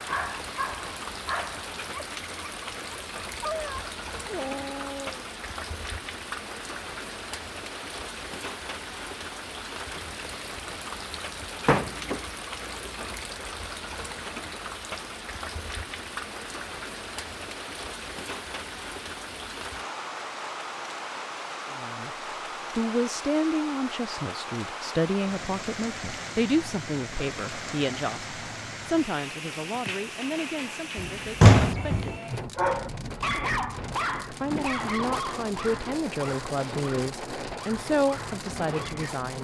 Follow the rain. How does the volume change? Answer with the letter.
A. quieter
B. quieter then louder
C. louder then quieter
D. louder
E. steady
E.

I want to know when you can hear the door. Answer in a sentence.
The door can be heard from 11.4 to 13.2 s and from 31.4 to 32.1 s.